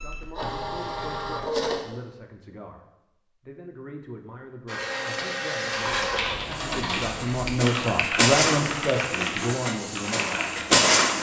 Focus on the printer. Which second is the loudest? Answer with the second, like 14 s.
11 s.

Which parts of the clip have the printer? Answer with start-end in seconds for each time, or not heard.
0.0-1.8, 4.7-11.1.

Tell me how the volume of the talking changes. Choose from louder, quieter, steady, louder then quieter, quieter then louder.
louder.